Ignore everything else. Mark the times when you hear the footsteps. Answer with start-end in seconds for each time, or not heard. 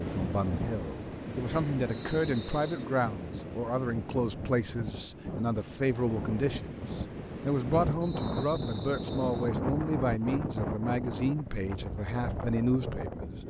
not heard.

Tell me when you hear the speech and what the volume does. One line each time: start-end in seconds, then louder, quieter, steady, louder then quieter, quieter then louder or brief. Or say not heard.
0.0-13.4 steady.